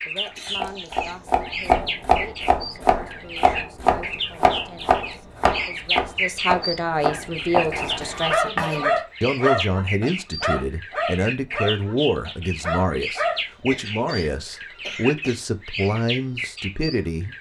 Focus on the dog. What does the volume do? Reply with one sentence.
The volume of the dog goes down.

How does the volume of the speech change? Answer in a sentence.
The volume of the speech goes up.